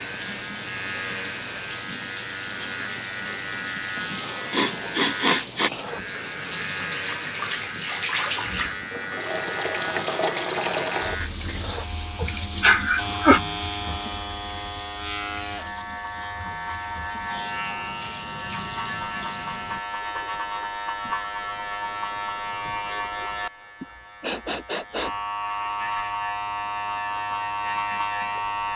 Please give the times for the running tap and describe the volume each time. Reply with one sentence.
You can hear the running tap from 0.0 to 19.8 s, getting louder then quieter.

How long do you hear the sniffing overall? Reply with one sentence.
You can hear the sniffing for 4 seconds altogether.